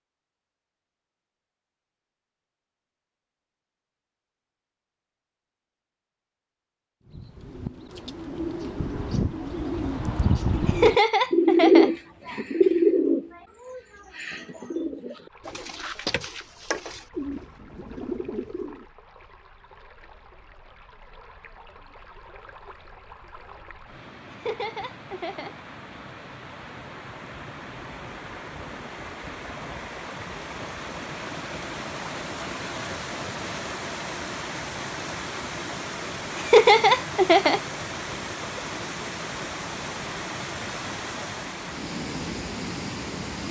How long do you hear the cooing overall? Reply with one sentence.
The cooing can be heard for 12 seconds in total.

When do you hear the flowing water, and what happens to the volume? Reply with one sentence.
The flowing water can be heard from 15.2 to 43.4 s, getting louder.